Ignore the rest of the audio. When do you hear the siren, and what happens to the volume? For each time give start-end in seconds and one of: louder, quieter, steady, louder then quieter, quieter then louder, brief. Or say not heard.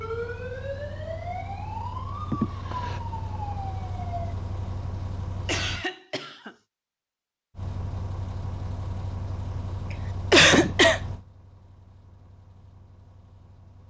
0.0-4.3 steady.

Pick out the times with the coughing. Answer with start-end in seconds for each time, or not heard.
2.3-3.0, 5.3-6.5, 10.3-11.0.